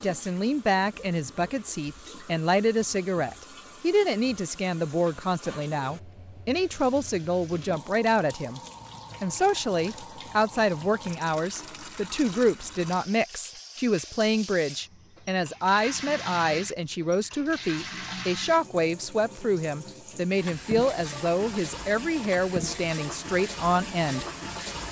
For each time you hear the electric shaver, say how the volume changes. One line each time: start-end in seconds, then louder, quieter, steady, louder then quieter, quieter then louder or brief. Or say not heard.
not heard.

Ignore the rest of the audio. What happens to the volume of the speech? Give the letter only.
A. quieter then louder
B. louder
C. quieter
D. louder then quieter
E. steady
E.